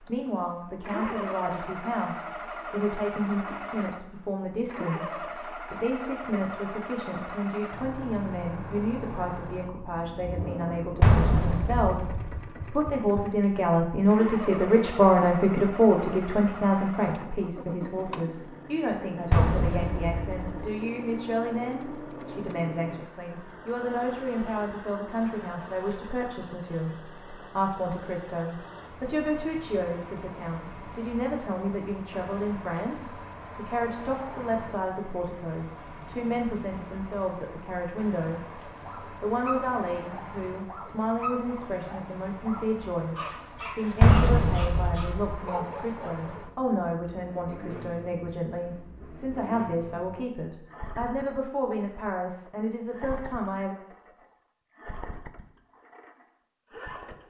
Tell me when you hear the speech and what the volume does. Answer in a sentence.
You can hear the speech from 0.0 to 53.8 s, getting louder then quieter.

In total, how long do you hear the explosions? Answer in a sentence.
The explosions can be heard for 4 seconds in total.